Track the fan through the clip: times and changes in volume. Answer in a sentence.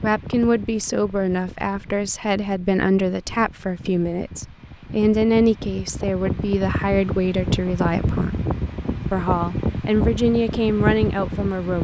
You can hear the fan from 0.0 to 11.7 s, getting louder.